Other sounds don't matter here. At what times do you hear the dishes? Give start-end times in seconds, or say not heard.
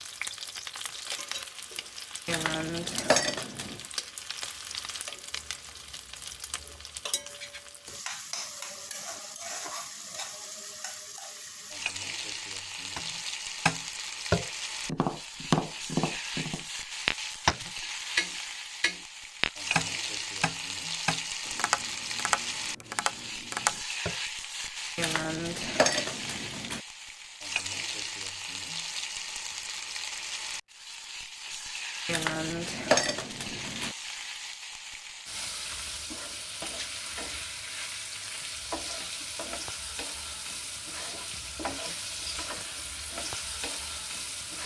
2.2-3.8, 24.9-26.8, 32.0-34.0.